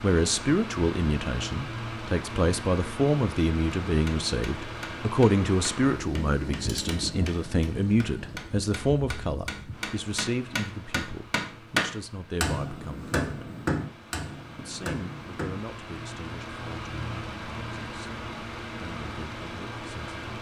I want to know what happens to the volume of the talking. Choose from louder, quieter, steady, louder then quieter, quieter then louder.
quieter.